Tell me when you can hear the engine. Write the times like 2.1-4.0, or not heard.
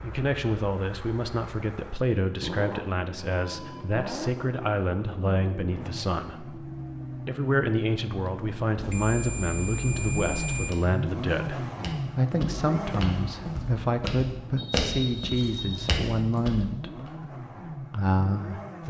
0.0-18.8.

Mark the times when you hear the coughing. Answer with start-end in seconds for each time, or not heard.
not heard.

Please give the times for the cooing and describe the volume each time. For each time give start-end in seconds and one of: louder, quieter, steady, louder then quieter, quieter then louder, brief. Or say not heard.
not heard.